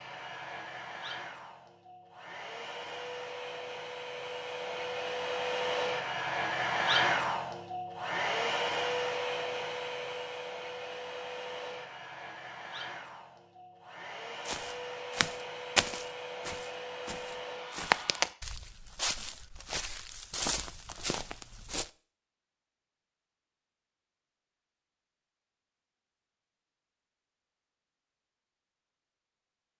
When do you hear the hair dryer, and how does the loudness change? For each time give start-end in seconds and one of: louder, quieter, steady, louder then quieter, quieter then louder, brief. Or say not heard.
0.0-18.3 louder then quieter.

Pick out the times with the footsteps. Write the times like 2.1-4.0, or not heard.
14.4-21.9.